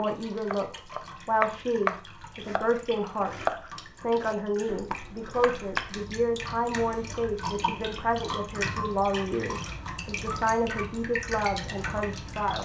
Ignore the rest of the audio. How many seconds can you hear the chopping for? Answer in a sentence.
The chopping can be heard for 6 seconds in total.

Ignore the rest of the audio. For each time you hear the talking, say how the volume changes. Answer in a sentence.
You can hear the talking from 0.0 to 12.5 s, at a steady volume.